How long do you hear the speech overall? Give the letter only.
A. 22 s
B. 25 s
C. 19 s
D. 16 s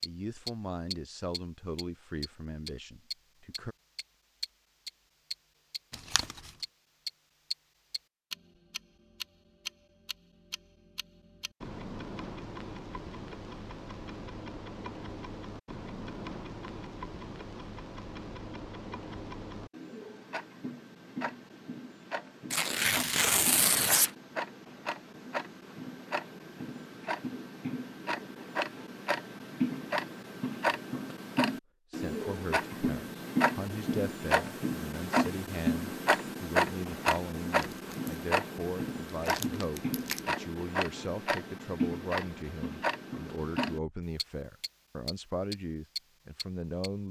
C.